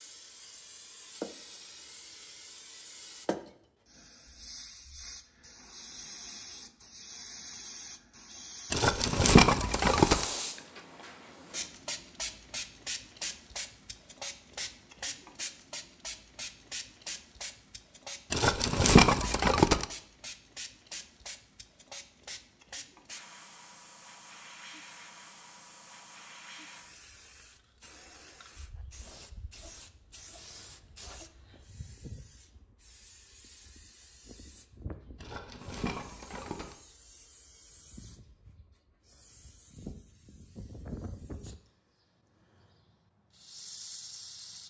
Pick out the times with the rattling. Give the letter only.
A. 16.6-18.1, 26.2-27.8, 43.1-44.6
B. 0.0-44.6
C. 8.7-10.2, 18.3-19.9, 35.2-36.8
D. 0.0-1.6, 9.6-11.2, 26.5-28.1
C.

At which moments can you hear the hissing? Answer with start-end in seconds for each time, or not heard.
0.0-44.6.